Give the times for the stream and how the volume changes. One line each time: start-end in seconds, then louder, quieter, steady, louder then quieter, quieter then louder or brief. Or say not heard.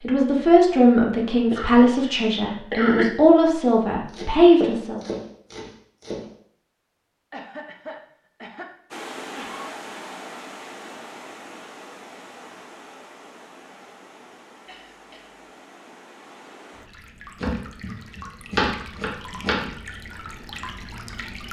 8.9-21.4 quieter then louder.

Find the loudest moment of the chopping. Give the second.
19 s.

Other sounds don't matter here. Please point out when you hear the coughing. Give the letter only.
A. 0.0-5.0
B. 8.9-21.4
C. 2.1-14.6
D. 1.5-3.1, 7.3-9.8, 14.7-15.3
D.